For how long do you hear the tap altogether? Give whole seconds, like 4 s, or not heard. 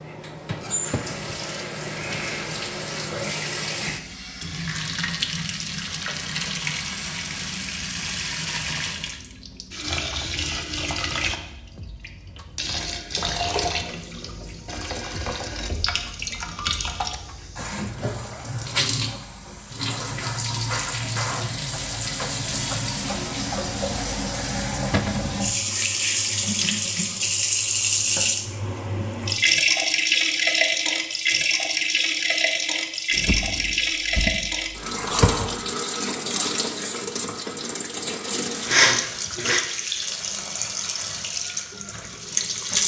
43 s.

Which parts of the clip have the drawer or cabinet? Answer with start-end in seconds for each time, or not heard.
0.7-1.1, 24.9-25.4, 33.1-35.5.